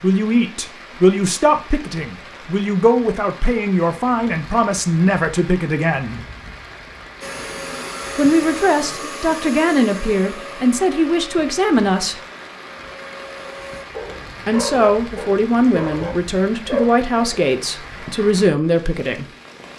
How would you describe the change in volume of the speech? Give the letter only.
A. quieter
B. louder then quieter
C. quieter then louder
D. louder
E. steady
E.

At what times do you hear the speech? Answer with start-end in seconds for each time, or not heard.
0.0-6.2, 8.2-12.2, 14.4-19.2.